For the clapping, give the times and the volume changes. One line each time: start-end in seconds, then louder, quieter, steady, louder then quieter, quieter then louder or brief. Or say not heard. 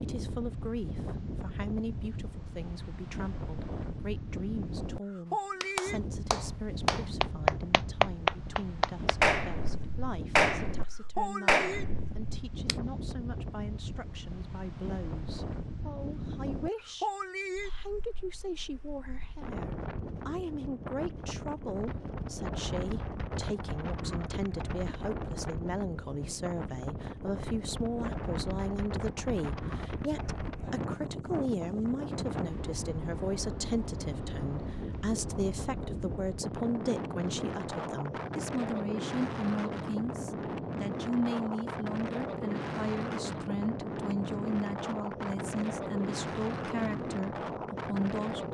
5.6-12.8 louder then quieter.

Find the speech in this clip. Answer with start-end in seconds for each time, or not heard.
0.0-48.4.